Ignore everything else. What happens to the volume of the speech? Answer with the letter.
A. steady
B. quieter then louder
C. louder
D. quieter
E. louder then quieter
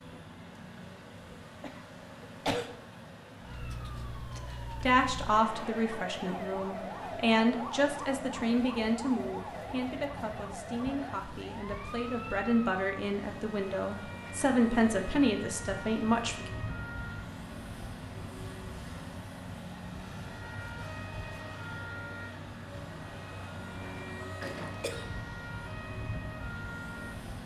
B.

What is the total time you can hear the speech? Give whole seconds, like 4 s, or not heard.
12 s.